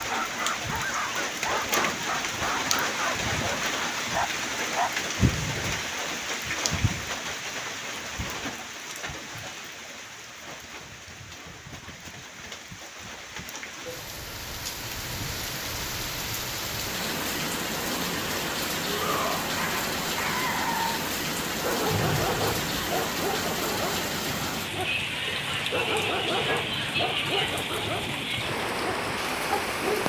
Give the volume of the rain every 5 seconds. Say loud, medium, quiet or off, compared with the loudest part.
loud, loud, medium, loud, loud, loud.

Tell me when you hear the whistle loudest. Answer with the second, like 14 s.
22 s.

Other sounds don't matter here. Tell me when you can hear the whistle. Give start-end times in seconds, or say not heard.
5.2-5.8, 21.9-22.8.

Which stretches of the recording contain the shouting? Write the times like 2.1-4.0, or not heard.
18.9-19.5.